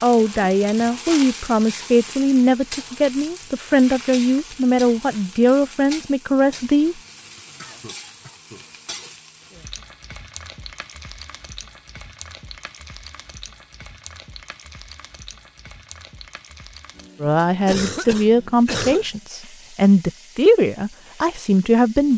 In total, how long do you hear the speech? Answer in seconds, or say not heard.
12 s.